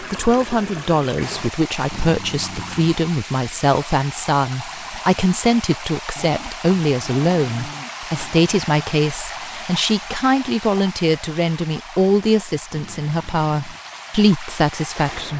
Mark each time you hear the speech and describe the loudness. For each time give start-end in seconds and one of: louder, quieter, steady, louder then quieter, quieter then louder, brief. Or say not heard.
0.0-15.3 steady.